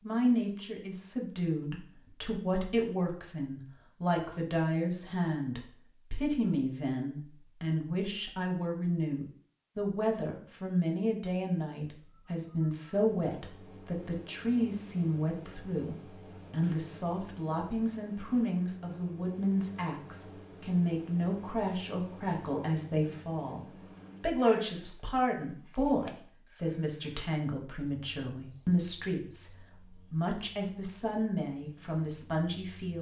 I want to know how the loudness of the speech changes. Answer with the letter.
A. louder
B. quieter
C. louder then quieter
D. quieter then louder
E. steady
E.